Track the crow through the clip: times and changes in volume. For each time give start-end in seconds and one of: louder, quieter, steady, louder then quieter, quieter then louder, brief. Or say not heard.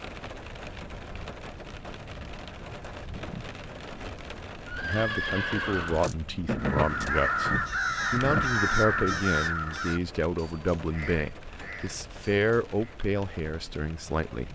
6.5-12.8 quieter.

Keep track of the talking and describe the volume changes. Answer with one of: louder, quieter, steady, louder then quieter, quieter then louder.
steady.